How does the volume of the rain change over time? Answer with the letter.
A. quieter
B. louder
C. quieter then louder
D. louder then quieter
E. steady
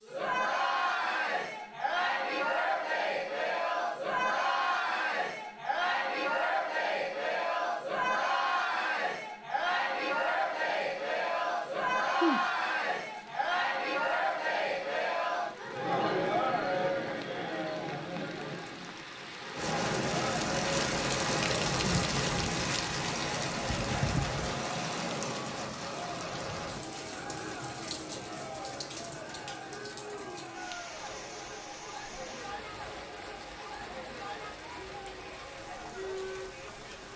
D.